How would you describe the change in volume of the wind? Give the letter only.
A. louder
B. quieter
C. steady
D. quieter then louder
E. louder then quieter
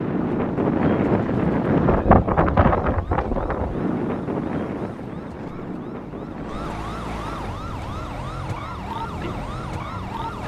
B.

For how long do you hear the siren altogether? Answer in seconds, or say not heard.
10 s.